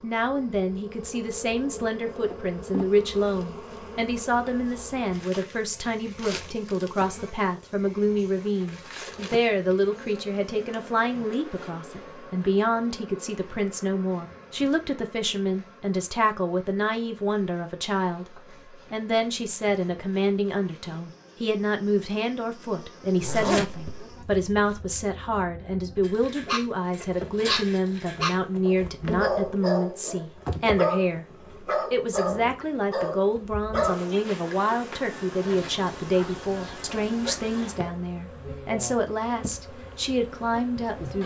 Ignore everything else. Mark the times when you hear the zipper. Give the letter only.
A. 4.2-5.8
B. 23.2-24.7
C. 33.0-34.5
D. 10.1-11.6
B.